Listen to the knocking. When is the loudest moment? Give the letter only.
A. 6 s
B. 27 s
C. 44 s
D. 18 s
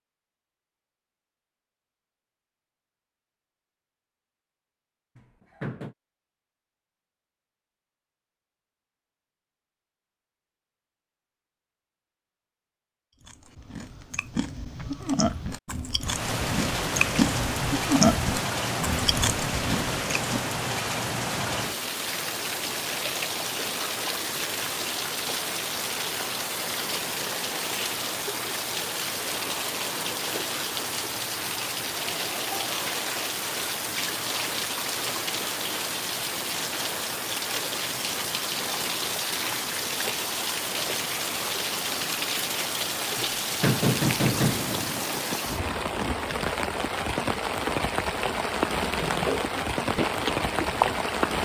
C.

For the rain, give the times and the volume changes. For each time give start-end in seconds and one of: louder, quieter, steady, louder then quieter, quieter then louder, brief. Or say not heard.
16.0-51.4 steady.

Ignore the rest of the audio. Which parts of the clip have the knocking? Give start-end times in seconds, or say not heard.
5.2-6.0, 43.1-44.6.